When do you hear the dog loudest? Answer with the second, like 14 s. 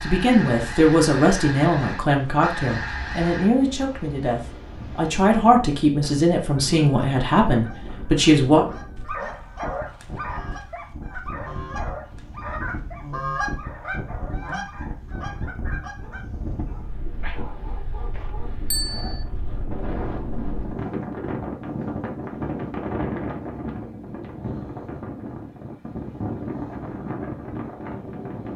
10 s.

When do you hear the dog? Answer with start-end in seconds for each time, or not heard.
8.7-19.2.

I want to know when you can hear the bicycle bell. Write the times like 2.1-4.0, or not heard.
18.7-19.2.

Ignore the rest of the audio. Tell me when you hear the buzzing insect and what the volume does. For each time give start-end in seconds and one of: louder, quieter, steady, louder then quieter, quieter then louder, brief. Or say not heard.
not heard.